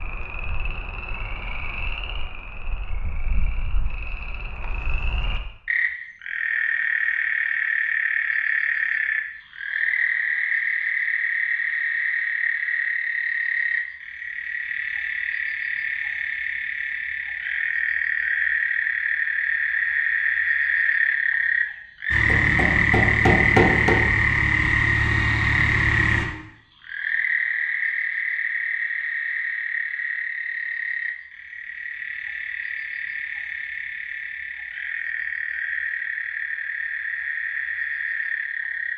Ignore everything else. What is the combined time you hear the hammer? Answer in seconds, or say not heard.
2 s.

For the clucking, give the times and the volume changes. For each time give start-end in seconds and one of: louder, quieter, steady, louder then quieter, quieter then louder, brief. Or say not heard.
not heard.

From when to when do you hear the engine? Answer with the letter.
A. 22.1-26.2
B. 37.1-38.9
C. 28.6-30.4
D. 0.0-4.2
A.